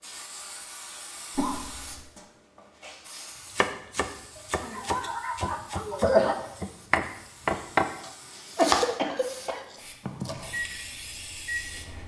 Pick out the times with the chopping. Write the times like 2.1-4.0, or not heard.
3.5-9.3, 10.1-10.6.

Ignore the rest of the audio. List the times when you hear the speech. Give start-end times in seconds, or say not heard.
not heard.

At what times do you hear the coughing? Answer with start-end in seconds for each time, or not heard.
1.4-2.0, 4.3-6.3, 8.6-9.6.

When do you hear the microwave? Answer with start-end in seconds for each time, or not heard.
10.4-12.0.